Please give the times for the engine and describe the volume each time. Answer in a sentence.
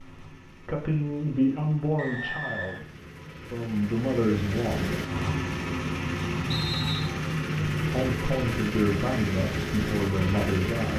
You can hear the engine from 0.0 to 10.9 s, getting louder.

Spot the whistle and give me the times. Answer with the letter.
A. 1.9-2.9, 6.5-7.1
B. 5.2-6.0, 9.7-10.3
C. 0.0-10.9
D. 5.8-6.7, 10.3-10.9
A.